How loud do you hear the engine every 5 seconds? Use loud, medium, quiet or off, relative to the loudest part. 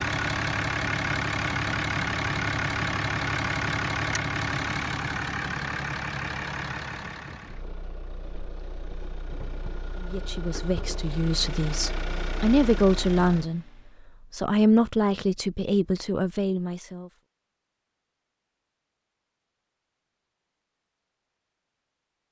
loud, medium, medium, off, off.